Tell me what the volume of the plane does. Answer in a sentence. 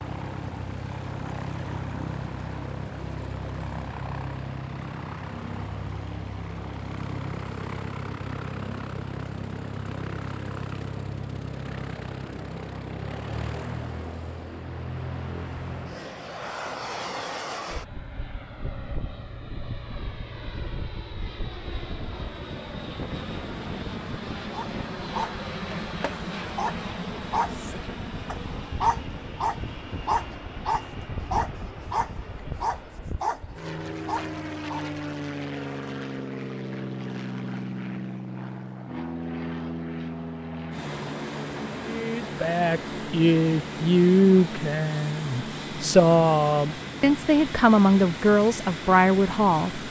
The loudness of the plane stays about the same.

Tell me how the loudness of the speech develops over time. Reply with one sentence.
The loudness of the speech stays about the same.